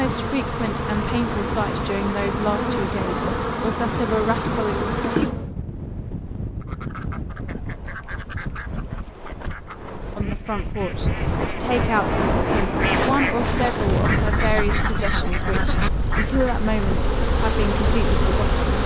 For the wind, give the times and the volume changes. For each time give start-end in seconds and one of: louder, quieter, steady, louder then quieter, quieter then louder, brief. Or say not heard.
0.0-18.8 louder then quieter.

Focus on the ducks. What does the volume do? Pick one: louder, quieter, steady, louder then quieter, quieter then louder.
louder.